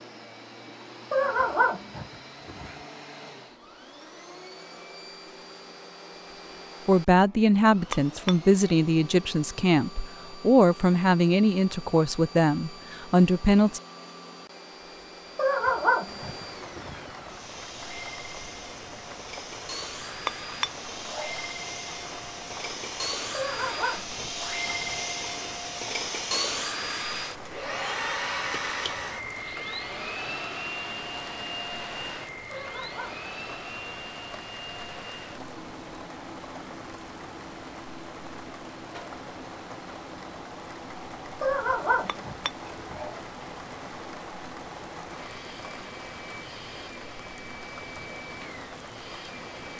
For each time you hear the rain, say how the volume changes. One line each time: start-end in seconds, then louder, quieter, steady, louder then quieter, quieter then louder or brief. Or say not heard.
16.1-49.7 steady.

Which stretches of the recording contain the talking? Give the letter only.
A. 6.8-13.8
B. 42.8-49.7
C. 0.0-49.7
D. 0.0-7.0
A.